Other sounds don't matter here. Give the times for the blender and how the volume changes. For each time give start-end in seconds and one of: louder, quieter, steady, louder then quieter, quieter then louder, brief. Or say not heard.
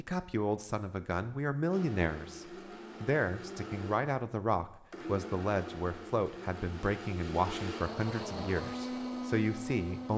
1.7-10.1 louder.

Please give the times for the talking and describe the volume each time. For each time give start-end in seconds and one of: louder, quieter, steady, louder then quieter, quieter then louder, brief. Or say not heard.
0.0-10.1 steady.